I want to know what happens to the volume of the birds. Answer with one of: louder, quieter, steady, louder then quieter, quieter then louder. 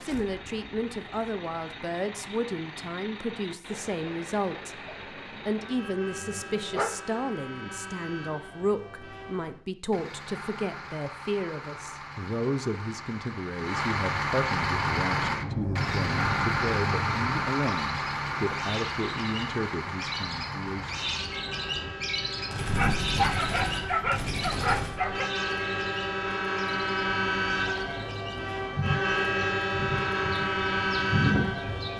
quieter then louder.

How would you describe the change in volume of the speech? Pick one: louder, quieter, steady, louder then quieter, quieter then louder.
steady.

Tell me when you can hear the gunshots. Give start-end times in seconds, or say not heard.
22.5-25.0.